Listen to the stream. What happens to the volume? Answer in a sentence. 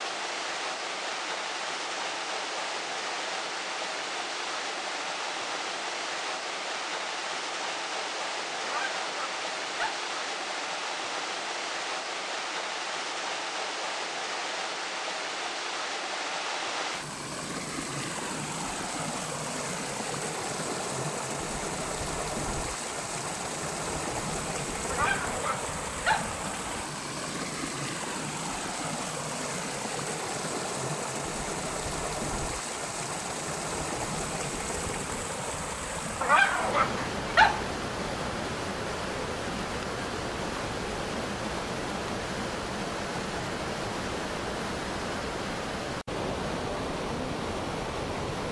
The volume of the stream stays about the same.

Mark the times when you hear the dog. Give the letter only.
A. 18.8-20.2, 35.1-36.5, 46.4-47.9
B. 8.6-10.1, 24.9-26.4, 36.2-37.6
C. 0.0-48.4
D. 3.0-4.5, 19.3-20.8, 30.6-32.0
B.